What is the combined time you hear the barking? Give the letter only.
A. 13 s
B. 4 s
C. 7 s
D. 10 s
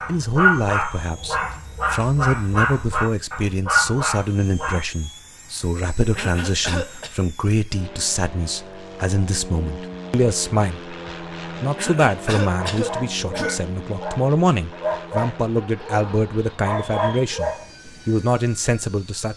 D.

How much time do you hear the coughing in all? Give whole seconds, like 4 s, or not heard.
3 s.